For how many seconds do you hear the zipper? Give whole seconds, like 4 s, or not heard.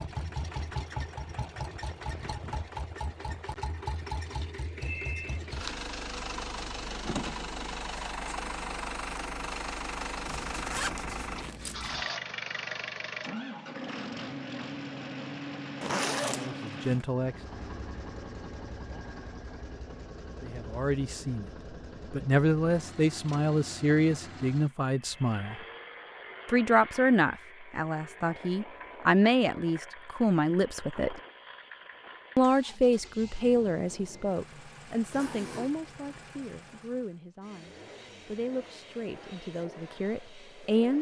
4 s.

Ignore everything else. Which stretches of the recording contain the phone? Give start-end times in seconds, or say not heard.
4.8-5.4, 24.9-25.9.